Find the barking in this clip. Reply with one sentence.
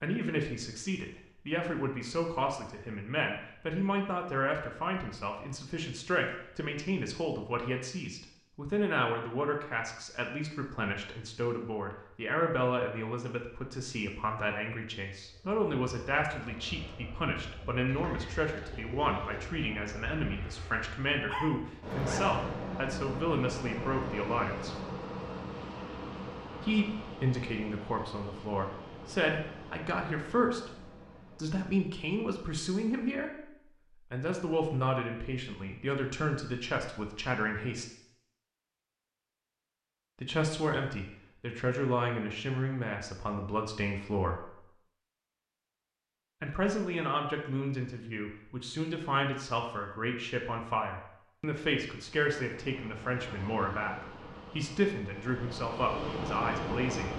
The barking can be heard from 21.2 to 22.3 s.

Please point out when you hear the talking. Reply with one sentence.
The talking can be heard from 0.0 to 24.8 s, from 26.6 to 37.9 s, from 40.2 to 44.5 s and from 46.4 to 57.1 s.